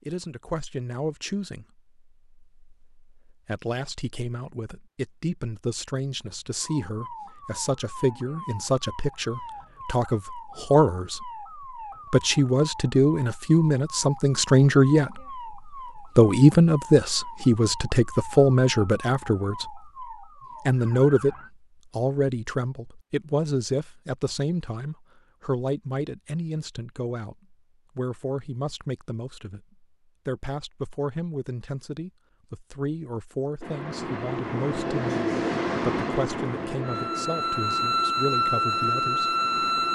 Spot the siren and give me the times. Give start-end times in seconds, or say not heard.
6.5-21.5, 36.8-39.8.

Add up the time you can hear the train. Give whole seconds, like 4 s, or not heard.
6 s.